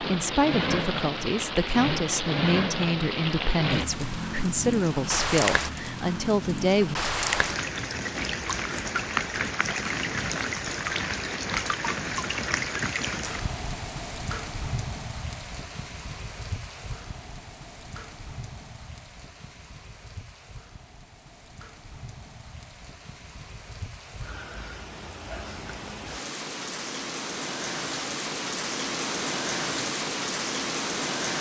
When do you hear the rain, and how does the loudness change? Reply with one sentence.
The rain can be heard from 0.0 to 31.3 s, getting quieter then louder.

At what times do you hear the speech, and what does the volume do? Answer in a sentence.
The speech can be heard from 0.0 to 7.0 s, at a steady volume.